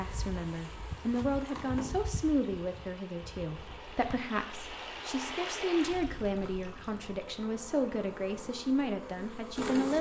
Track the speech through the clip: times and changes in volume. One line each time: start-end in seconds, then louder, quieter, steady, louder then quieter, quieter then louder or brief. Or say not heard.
0.0-9.9 steady.